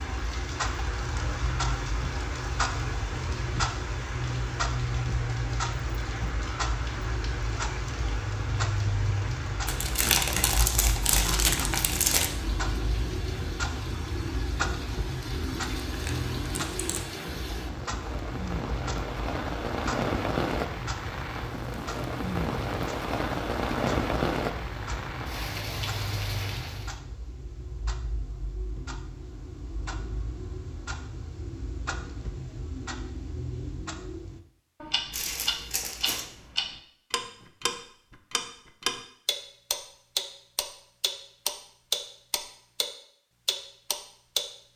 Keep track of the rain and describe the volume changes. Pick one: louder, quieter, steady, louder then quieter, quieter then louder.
louder.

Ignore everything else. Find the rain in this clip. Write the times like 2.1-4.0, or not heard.
0.0-27.0.